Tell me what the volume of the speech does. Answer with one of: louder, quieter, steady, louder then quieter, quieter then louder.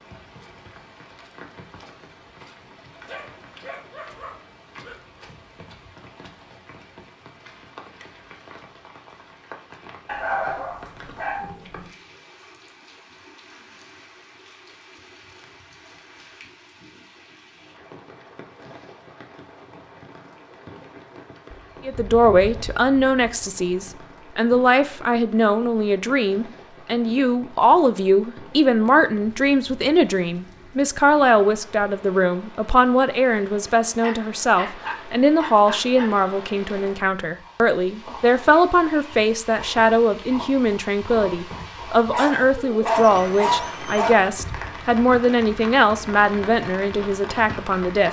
steady.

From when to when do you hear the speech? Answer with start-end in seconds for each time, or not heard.
21.9-48.0.